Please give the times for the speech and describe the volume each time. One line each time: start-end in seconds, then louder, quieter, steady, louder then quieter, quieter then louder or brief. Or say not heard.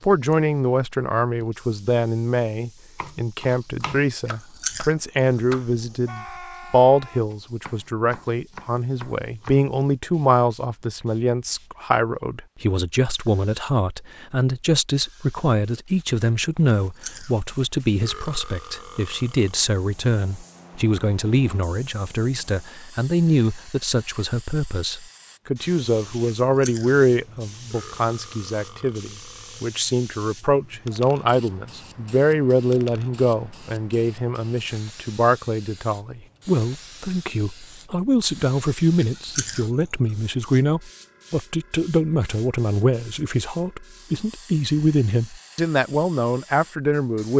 0.0-47.3 steady.